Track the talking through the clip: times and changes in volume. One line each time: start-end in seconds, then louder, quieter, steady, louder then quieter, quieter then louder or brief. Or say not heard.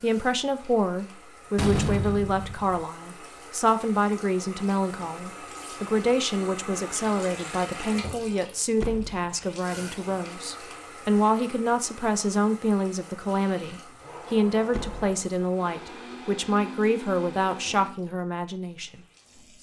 0.0-19.5 steady.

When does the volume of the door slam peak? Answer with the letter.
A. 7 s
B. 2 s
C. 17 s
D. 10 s
B.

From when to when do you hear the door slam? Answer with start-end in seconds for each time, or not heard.
1.6-2.9, 8.8-9.2, 14.7-15.2.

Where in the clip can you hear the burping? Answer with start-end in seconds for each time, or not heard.
not heard.